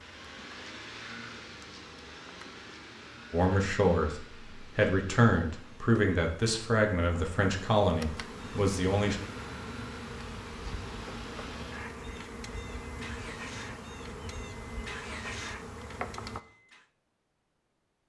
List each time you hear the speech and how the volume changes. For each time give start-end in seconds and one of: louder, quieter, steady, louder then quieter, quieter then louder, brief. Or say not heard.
3.3-9.2 steady.